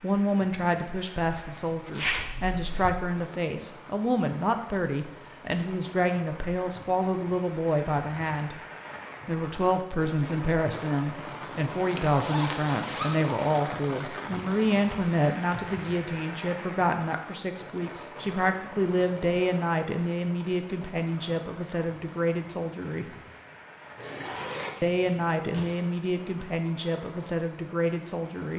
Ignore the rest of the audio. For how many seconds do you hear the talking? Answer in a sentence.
You can hear the talking for 26 seconds altogether.